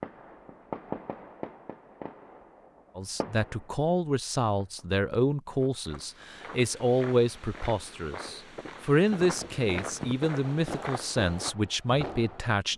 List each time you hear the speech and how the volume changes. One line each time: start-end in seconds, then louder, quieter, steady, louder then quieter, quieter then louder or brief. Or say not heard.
3.0-12.7 steady.